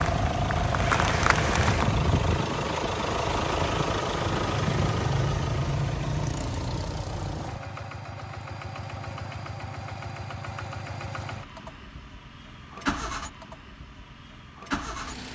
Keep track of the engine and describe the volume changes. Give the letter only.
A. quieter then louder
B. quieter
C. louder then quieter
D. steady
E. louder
B.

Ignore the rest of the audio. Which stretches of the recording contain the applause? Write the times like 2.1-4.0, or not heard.
0.0-1.9.